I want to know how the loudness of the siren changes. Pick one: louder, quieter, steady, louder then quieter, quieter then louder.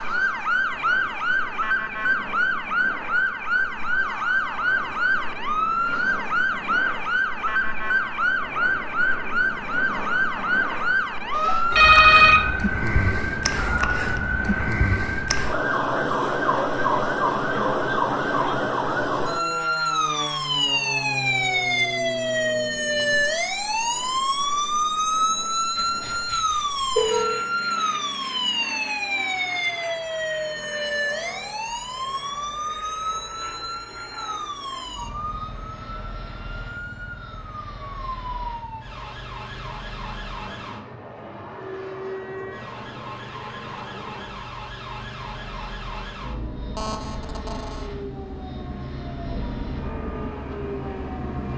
quieter.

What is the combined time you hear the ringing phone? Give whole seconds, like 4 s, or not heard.
4 s.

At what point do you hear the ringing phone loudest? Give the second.
12 s.